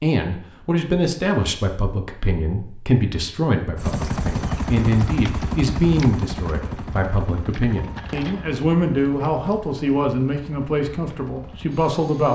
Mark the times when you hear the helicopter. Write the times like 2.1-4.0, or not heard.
3.8-12.3.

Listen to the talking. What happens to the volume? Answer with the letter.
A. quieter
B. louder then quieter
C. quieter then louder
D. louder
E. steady
E.